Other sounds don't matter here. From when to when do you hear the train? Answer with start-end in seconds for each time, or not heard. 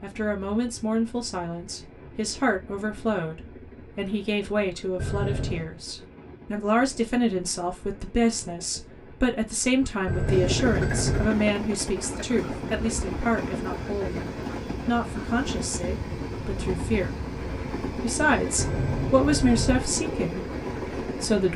0.0-21.5.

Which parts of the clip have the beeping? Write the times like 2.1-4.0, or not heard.
5.0-5.7, 10.1-11.3, 18.6-19.8.